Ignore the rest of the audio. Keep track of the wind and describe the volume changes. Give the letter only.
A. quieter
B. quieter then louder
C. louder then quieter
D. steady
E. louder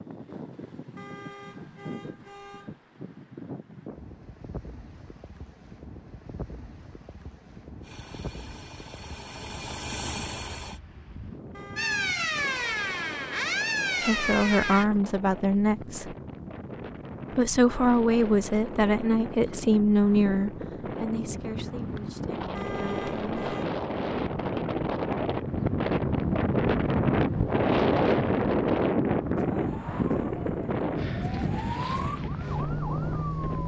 E.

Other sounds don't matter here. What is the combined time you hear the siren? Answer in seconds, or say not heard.
7 s.